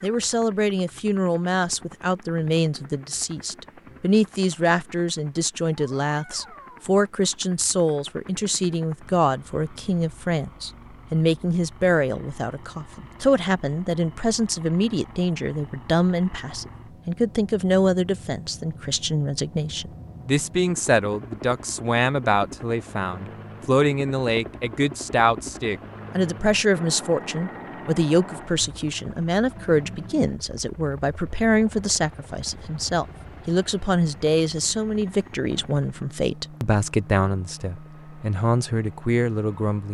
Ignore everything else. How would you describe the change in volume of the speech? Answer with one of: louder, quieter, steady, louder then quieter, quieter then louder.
steady.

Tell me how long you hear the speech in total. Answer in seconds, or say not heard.
40 s.